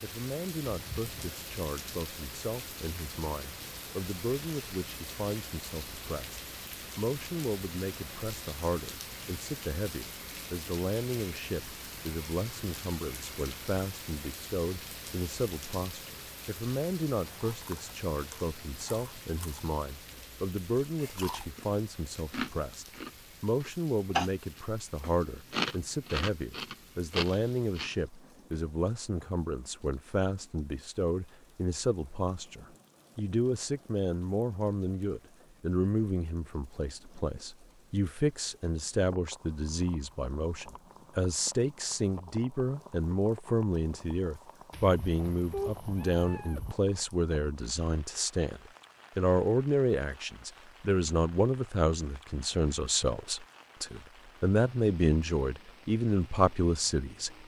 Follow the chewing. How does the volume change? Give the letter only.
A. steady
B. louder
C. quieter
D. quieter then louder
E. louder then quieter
B.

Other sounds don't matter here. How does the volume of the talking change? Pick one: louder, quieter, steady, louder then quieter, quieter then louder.
louder.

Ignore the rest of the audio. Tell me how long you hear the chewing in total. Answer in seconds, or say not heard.
11 s.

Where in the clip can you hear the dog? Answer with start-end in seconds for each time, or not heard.
not heard.